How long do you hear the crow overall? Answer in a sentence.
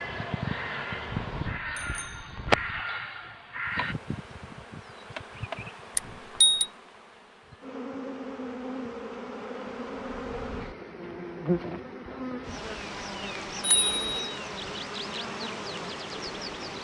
The crow can be heard for 4 seconds in total.